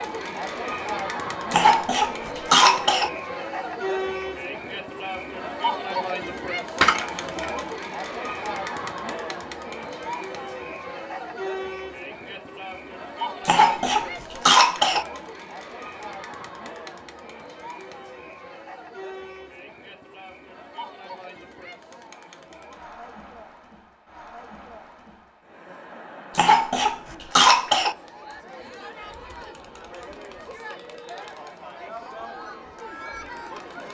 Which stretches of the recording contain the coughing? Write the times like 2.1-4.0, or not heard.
1.5-3.1, 13.4-15.1, 26.4-27.9.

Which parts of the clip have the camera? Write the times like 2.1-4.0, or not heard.
6.8-7.5.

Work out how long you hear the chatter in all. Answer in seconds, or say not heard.
34 s.